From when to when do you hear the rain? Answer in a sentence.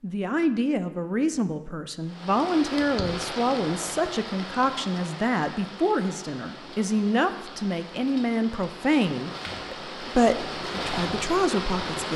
The rain can be heard from 2.0 to 12.1 s.